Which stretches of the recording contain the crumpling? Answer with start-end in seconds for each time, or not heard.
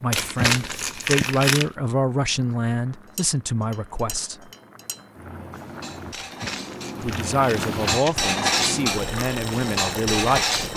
0.1-1.6, 6.1-8.2.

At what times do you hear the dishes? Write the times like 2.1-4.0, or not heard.
3.1-10.7.